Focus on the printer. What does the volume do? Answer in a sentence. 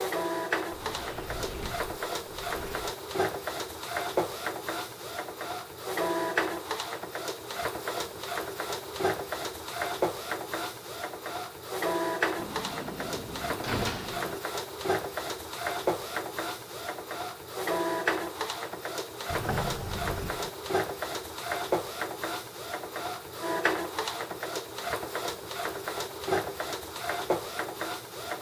The volume of the printer stays about the same.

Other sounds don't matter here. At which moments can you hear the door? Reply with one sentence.
The door can be heard from 0.7 to 3.0 s, from 12.3 to 14.4 s and from 19.3 to 20.5 s.